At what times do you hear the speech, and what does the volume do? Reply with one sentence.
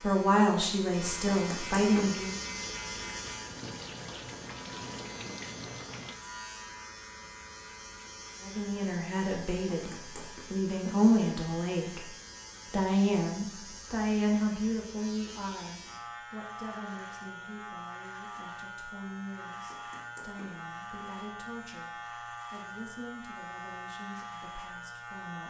You can hear the speech briefly from 0.0 to 2.4 s; and from 8.4 to 25.4 s, getting quieter.